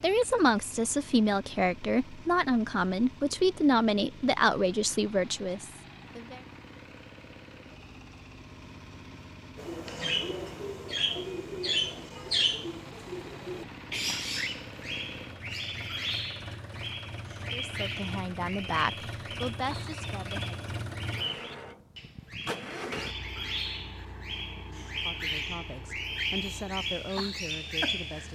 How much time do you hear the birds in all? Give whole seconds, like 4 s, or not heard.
19 s.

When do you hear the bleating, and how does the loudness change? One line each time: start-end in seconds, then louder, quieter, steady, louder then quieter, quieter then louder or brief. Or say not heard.
not heard.